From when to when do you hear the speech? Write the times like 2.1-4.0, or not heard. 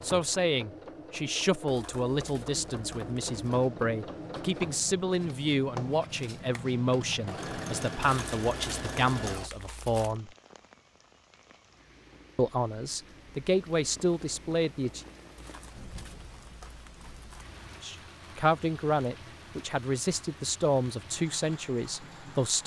0.0-10.3, 12.3-15.1, 17.8-22.6.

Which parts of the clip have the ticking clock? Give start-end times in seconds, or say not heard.
not heard.